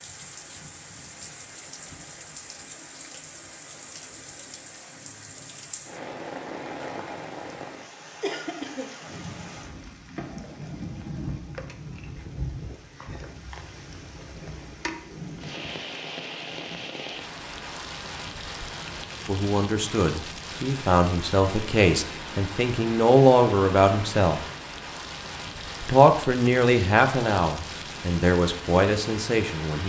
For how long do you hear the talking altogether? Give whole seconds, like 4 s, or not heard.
9 s.